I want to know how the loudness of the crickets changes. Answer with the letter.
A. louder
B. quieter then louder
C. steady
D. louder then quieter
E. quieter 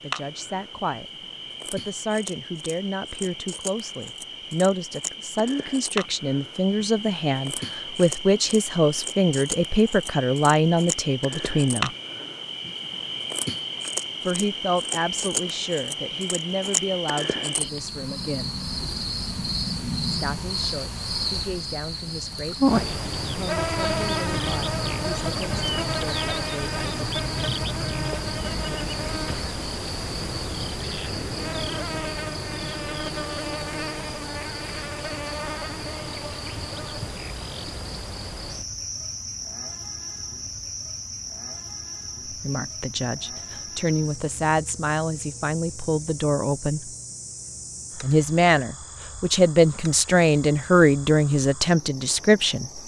D.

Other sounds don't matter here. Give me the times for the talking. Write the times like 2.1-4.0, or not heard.
0.0-1.1, 1.7-11.9, 14.2-18.6, 20.1-26.9, 42.2-47.0, 48.0-52.8.